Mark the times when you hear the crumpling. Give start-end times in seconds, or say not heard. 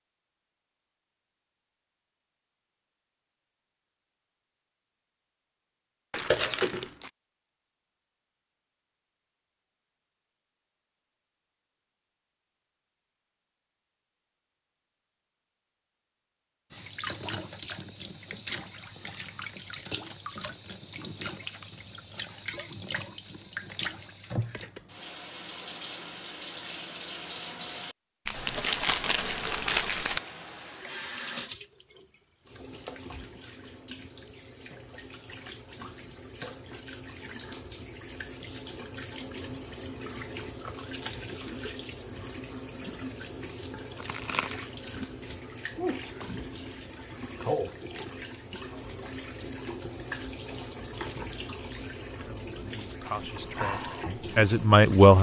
6.1-7.1, 28.2-30.2, 44.0-44.6.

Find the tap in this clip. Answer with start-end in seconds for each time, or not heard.
16.7-55.1.